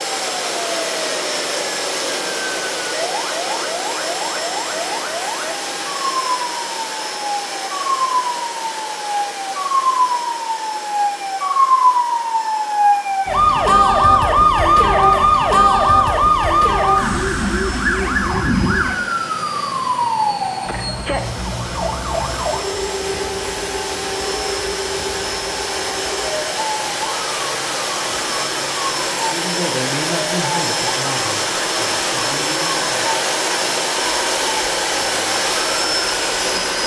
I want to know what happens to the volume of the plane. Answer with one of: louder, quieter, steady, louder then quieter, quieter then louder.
quieter then louder.